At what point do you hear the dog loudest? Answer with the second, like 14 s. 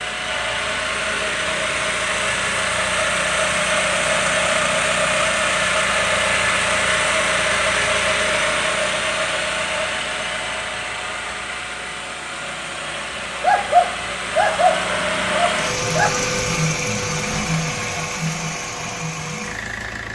14 s.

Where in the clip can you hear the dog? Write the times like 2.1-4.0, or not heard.
13.4-16.1.